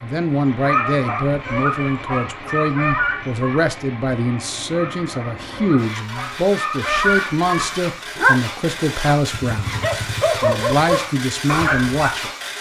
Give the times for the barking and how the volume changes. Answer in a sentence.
The barking can be heard from 0.6 to 12.2 s, getting quieter then louder.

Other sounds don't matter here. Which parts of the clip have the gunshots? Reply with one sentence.
The gunshots can't be heard in this clip.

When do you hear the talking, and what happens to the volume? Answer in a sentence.
The talking can be heard from 0.0 to 12.3 s, at a steady volume.